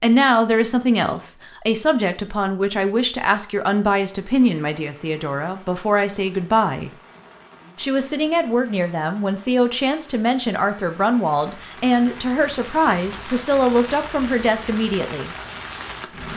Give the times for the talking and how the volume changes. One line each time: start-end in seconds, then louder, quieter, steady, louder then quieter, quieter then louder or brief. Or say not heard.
0.0-6.9 steady
7.8-15.3 steady.